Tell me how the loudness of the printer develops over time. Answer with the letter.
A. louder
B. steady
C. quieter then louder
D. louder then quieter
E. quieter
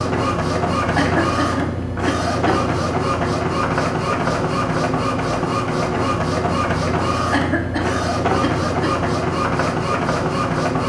B.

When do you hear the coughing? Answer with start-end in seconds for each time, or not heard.
0.9-2.5, 7.3-8.9.